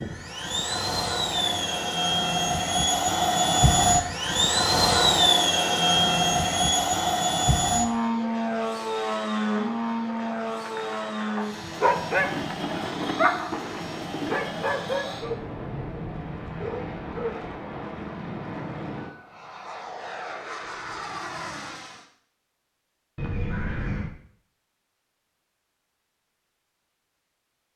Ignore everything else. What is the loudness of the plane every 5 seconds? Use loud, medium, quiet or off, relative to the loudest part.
loud, loud, medium, quiet, quiet, off.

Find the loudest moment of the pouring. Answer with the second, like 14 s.
24 s.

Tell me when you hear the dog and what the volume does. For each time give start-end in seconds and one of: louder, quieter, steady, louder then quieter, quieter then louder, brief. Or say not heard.
11.3-17.6 quieter.